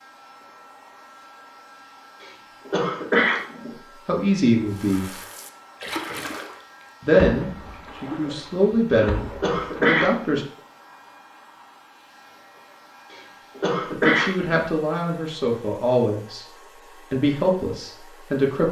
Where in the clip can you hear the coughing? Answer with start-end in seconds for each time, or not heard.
2.2-3.7, 8.9-10.4, 13.1-14.5.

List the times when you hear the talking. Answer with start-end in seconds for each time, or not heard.
4.0-5.1, 7.0-10.4, 13.9-18.6.